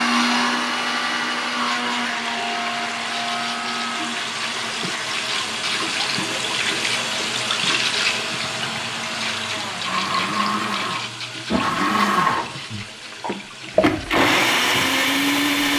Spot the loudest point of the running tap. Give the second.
8 s.